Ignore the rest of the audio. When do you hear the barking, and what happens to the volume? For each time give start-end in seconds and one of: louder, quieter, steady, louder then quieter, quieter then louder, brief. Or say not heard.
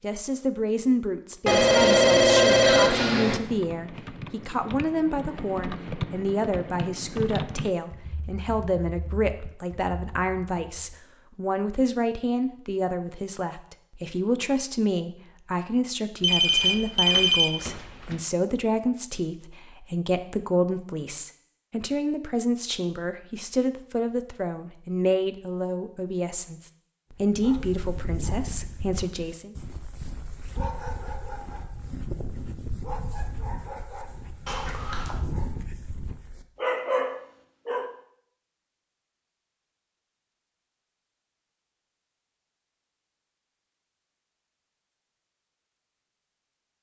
27.1-38.0 louder.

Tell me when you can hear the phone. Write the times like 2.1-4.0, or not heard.
1.4-3.4, 16.2-18.1, 34.5-35.1.